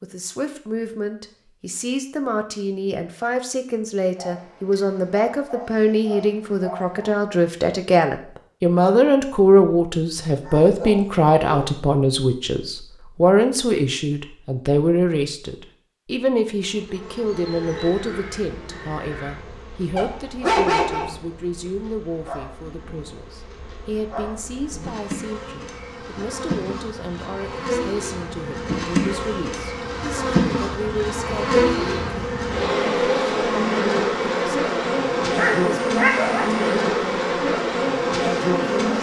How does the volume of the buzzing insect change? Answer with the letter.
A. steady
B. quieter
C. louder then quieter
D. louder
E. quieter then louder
D.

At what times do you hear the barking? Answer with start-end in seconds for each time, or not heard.
4.2-7.1, 10.4-11.8, 19.9-21.1, 35.4-36.6.